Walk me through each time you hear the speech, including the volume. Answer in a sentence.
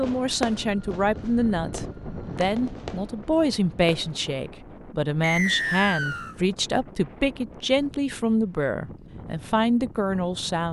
You can hear the speech from 0.0 to 10.6 s, at a steady volume.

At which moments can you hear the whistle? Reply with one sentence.
You can hear the whistle from 5.2 to 6.3 s.